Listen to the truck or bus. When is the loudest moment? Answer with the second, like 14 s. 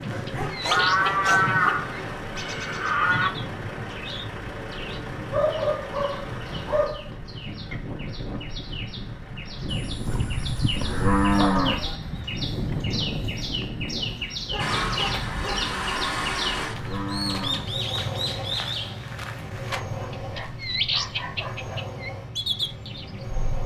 16 s.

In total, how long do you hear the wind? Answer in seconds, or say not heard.
14 s.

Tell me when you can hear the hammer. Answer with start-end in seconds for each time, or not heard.
not heard.